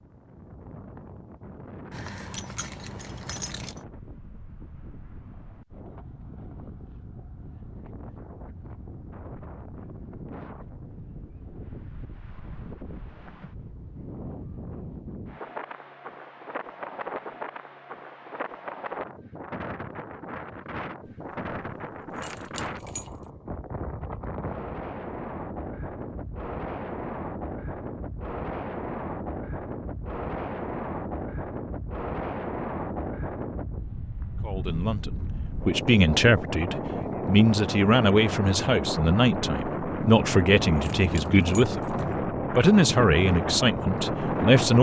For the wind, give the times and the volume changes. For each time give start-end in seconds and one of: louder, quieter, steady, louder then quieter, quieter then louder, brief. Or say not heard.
0.0-44.7 louder.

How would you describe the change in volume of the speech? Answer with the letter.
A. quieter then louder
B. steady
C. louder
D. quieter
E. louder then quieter
B.